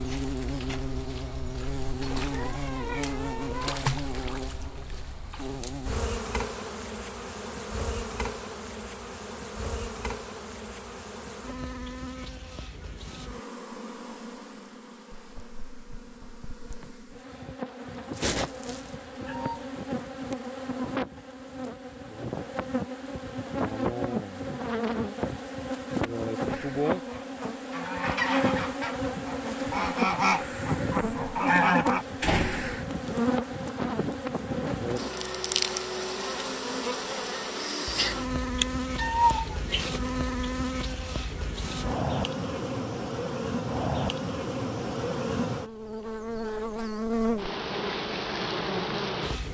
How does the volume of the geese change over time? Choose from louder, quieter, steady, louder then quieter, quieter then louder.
louder.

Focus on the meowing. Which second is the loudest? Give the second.
39 s.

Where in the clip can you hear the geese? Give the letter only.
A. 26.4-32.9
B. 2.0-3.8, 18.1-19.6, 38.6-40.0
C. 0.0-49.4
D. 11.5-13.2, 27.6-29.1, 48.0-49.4
A.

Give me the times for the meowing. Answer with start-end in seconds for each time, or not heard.
2.0-3.8, 18.1-19.6, 38.6-40.0.